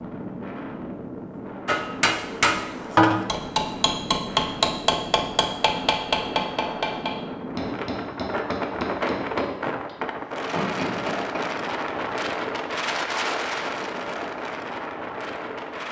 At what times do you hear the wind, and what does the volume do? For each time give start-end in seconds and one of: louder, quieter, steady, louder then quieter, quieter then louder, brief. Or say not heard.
0.0-15.8 louder.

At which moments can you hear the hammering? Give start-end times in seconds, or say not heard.
1.6-11.6.